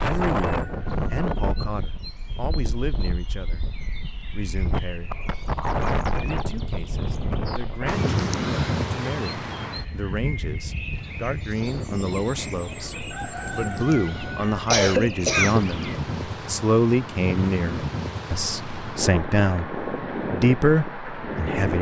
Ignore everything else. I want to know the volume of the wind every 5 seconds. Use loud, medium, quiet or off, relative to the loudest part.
loud, loud, medium, loud, loud.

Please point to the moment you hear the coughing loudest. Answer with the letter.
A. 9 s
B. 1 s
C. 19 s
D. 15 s
D.